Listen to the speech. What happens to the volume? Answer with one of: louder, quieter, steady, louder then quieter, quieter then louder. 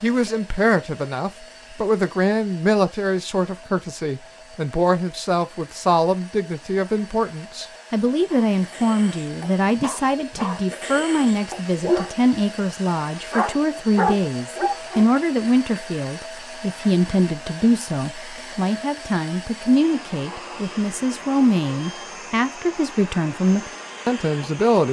steady.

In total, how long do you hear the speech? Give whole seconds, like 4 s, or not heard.
25 s.